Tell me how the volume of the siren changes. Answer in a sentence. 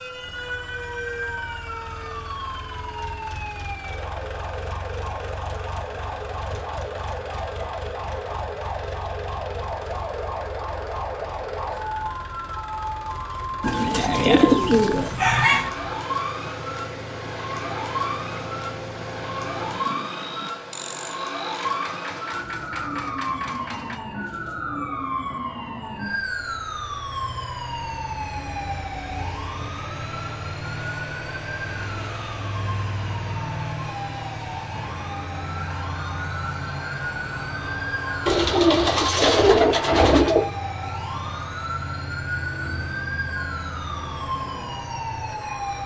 The loudness of the siren stays about the same.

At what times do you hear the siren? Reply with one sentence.
The siren can be heard from 0.0 to 45.8 s.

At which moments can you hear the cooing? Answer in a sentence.
You can hear the cooing from 13.6 to 15.7 s and from 38.2 to 40.5 s.